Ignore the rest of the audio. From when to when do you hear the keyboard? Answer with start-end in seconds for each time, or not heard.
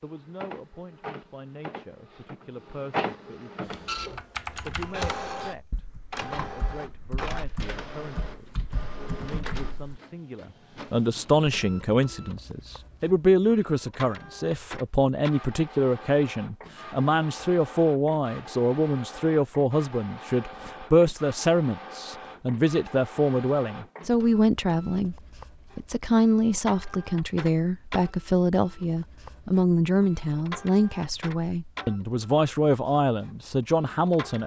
3.6-10.0.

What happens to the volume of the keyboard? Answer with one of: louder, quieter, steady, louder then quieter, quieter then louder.
quieter then louder.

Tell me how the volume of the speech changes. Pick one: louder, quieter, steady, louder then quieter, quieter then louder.
louder.